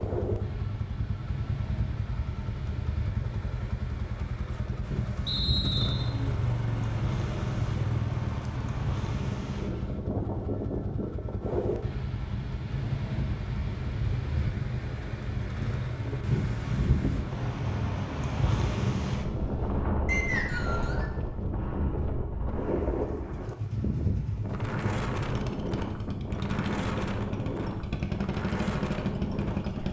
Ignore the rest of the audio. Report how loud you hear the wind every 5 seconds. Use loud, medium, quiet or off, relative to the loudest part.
medium, medium, loud, loud, loud, loud.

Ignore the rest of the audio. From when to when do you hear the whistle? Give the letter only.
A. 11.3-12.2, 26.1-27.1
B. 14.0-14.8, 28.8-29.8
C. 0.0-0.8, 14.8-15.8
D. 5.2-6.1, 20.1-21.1
D.